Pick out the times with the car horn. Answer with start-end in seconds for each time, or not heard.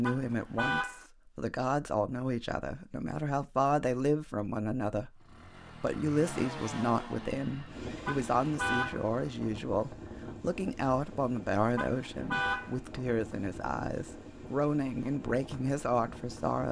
0.0-1.1, 8.1-9.1, 11.8-12.8.